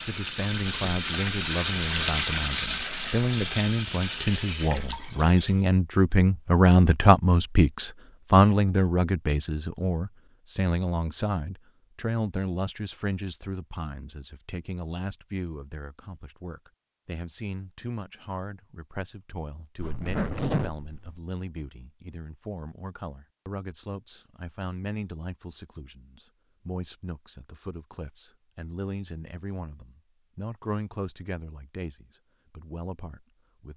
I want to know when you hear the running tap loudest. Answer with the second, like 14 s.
2 s.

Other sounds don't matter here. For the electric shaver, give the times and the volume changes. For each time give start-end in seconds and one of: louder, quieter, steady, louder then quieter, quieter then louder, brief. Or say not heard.
not heard.